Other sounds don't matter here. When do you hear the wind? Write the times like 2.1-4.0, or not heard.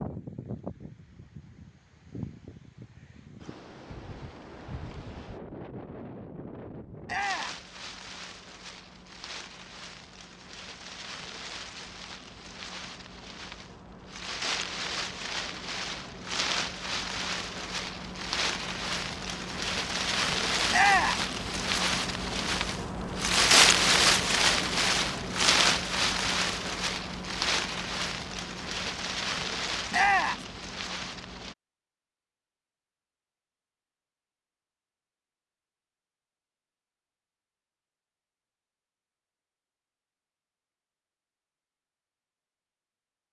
0.0-31.6.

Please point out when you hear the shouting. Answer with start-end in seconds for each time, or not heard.
7.0-7.6, 20.7-21.2, 29.9-30.4.